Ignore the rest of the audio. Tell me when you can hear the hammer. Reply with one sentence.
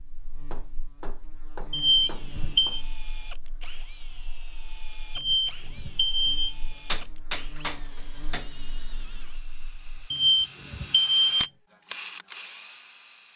You can hear the hammer from 0.5 to 2.8 s and from 6.8 to 8.5 s.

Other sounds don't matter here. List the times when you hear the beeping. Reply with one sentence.
You can hear the beeping from 1.7 to 2.8 s, from 5.2 to 6.5 s and from 10.1 to 11.5 s.